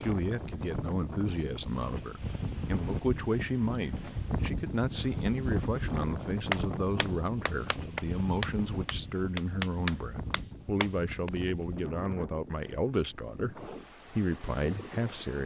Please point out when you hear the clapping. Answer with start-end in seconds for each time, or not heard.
6.5-11.3.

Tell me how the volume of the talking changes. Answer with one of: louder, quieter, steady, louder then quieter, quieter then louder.
steady.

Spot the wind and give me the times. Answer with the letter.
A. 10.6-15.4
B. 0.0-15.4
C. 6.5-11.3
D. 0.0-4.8
B.